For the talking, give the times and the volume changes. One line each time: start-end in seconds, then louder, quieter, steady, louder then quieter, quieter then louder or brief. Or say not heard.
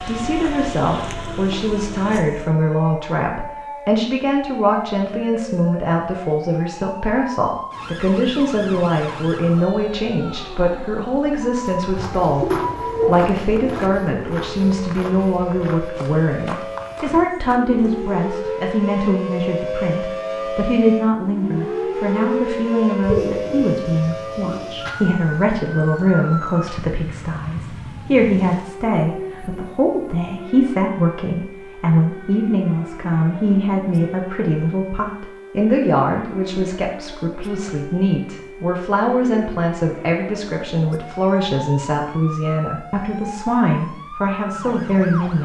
0.0-45.4 steady.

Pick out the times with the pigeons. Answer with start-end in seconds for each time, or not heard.
11.9-14.0, 23.0-24.9.